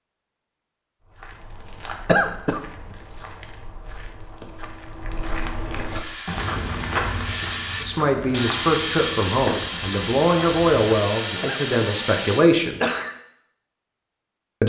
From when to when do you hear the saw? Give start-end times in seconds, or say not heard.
6.0-12.4.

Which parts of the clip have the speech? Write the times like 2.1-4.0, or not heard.
7.8-12.8.